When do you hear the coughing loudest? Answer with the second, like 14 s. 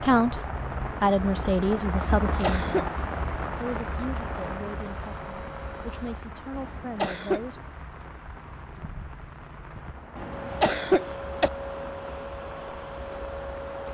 11 s.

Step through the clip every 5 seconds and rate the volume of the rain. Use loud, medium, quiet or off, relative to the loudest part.
loud, medium, medium.